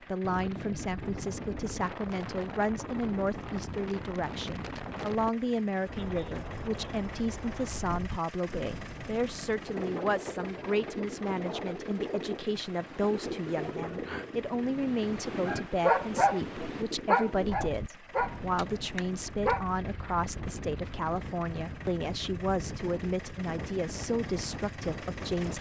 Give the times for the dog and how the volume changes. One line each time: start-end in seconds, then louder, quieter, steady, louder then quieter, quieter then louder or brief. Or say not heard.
13.8-19.6 louder then quieter.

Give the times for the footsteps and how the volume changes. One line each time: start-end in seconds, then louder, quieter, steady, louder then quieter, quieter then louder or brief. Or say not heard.
not heard.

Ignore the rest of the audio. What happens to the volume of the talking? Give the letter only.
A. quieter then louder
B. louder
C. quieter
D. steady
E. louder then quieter
D.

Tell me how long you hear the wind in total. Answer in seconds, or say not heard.
25 s.